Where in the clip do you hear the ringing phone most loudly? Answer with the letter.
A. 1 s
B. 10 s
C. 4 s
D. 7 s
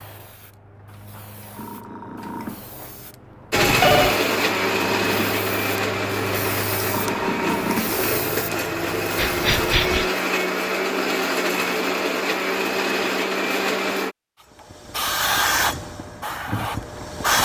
C.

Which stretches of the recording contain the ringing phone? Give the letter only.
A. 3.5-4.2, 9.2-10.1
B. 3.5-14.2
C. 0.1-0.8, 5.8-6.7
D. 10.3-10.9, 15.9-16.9
A.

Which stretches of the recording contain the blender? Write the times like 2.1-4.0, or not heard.
3.5-14.2.